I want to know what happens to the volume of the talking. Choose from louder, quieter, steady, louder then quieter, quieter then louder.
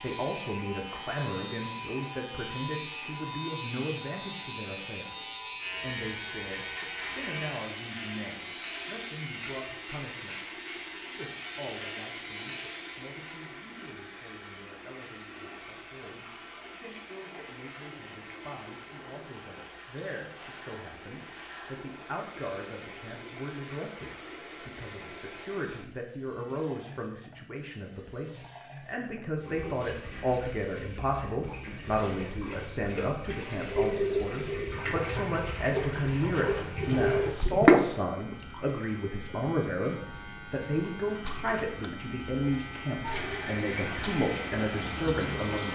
quieter then louder.